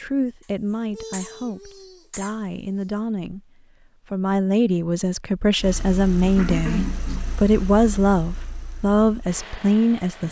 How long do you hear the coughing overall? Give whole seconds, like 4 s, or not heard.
4 s.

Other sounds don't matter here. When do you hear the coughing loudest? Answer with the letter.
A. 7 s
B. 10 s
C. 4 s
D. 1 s
A.